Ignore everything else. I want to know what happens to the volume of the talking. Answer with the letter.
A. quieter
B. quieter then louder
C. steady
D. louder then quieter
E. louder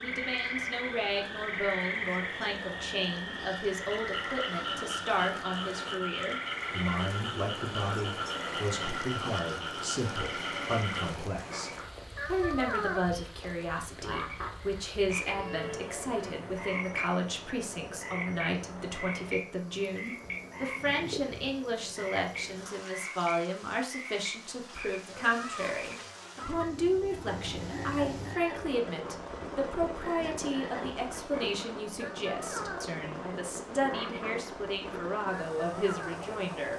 C.